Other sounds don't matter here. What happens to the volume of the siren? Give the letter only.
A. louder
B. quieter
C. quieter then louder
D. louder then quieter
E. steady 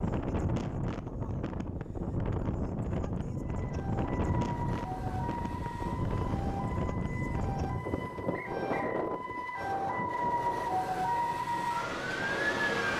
A.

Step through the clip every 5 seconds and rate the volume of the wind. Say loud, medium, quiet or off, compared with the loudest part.
loud, loud, medium.